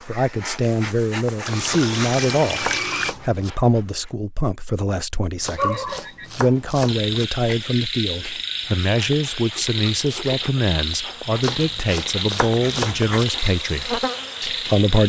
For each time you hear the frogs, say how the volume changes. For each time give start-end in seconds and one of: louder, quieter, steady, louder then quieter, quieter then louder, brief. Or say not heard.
5.5-15.0 steady.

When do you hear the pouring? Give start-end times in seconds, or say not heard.
1.4-3.1, 9.6-10.4.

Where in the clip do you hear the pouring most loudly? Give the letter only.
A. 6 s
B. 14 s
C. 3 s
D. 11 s
C.